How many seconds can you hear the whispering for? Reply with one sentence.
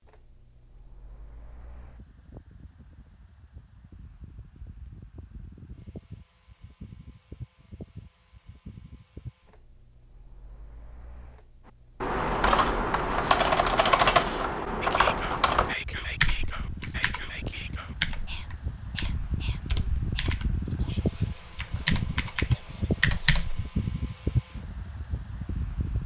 The whispering can be heard for 9 seconds in total.